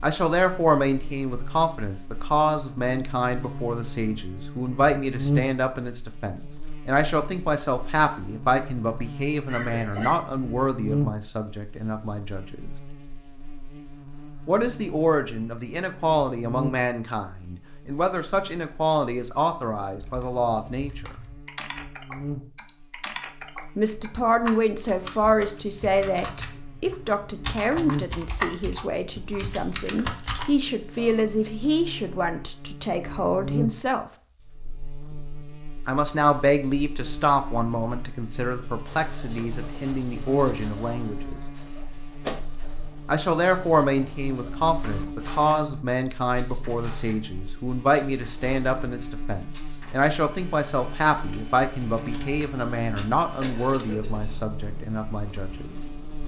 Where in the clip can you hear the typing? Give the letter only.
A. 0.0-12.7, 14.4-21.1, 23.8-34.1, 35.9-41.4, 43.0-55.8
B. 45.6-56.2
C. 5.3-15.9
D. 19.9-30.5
D.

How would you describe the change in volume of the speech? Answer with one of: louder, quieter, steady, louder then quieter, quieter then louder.
steady.